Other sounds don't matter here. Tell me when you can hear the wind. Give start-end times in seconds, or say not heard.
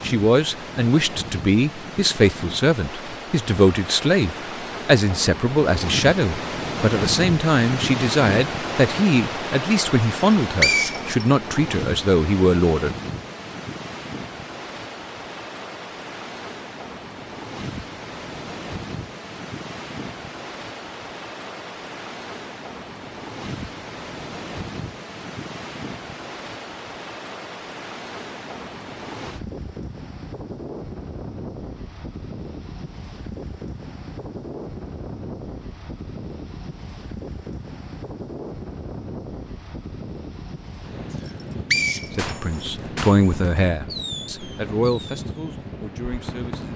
0.0-46.7.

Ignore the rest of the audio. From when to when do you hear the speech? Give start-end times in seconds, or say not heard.
0.0-12.9, 42.1-46.7.